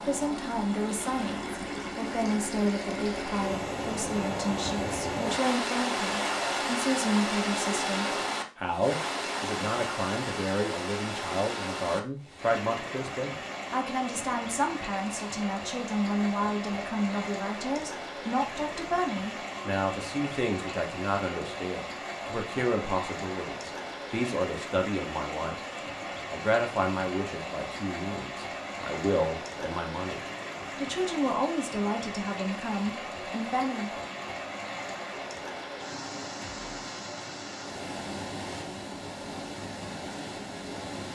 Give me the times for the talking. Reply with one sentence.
The talking can be heard from 0.0 to 25.6 s and from 26.3 to 34.0 s.